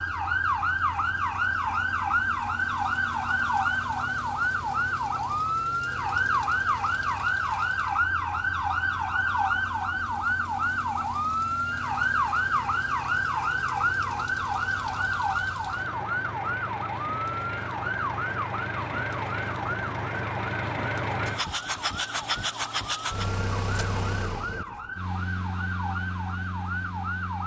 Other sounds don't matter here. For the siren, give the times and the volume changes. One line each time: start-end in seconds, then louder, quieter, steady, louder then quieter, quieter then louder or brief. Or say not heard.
0.0-27.4 quieter.